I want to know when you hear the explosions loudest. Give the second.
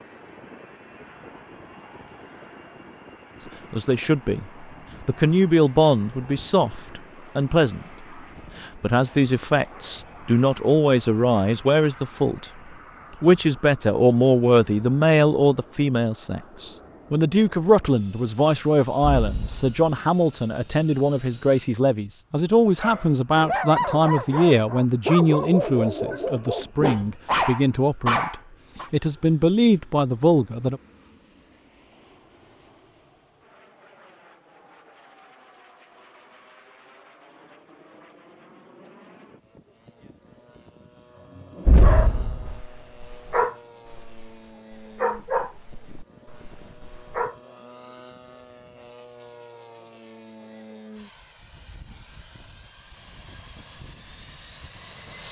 42 s.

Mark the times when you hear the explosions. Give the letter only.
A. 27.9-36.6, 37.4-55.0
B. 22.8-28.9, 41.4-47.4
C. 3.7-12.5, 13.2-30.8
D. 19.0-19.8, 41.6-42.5
D.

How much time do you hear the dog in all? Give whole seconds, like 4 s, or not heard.
12 s.